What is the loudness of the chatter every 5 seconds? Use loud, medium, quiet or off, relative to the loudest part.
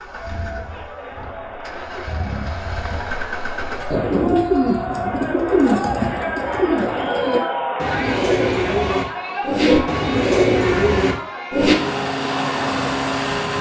medium, loud, medium.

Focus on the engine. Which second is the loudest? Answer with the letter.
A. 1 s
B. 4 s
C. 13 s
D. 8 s
C.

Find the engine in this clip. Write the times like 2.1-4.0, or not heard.
0.0-4.0, 11.6-13.5.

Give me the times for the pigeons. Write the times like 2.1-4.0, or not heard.
3.9-11.8.